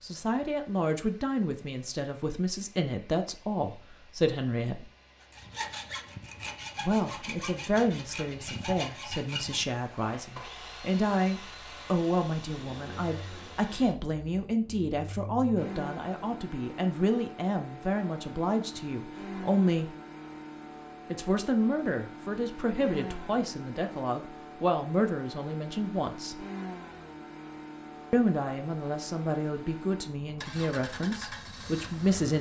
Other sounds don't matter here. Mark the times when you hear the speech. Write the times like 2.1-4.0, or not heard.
0.0-4.9, 6.8-19.9, 21.1-26.4, 28.1-32.3.